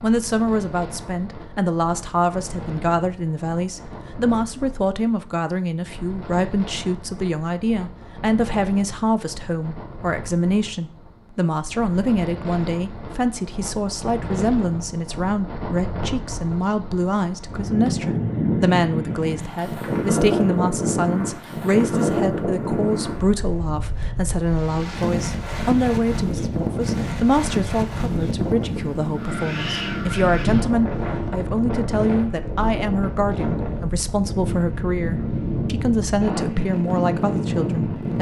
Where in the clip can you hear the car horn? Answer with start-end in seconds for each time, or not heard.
not heard.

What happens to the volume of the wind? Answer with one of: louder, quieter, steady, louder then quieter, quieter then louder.
louder.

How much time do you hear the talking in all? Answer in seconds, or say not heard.
38 s.